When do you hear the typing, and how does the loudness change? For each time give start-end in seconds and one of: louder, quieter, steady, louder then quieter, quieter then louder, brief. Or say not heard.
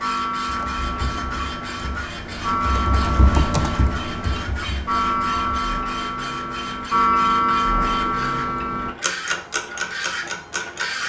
0.5-5.6 louder then quieter.